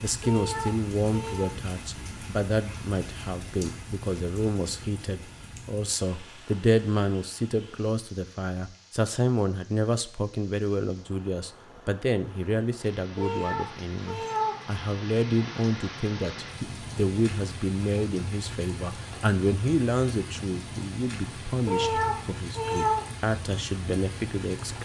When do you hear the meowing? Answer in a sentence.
You can hear the meowing from 0.2 to 1.6 s, from 13.2 to 14.7 s and from 21.6 to 23.1 s.